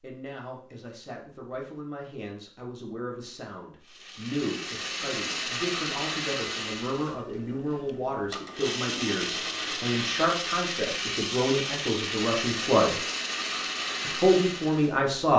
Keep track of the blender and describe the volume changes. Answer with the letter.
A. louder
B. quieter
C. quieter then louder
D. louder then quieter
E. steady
C.